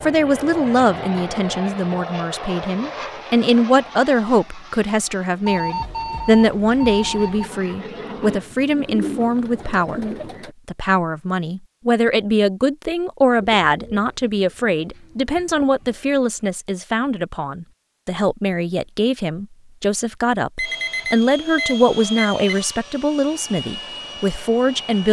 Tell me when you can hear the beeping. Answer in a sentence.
You can hear the beeping from 5.5 to 7.5 s and from 20.6 to 22.6 s.